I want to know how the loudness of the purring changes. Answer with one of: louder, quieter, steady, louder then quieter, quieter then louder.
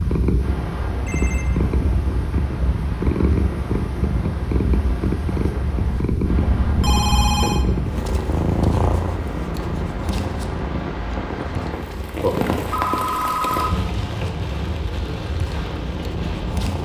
quieter.